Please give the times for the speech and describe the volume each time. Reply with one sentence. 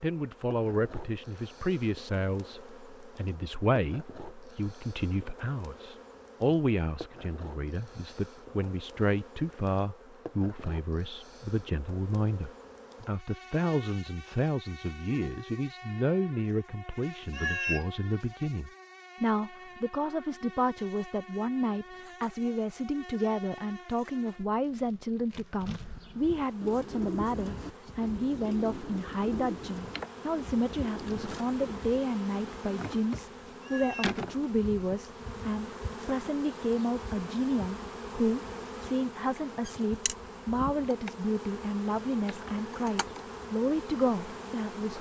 You can hear the speech from 0.0 to 44.9 s, at a steady volume.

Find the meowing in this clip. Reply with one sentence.
The meowing can be heard from 17.3 to 17.9 s and from 33.6 to 34.2 s.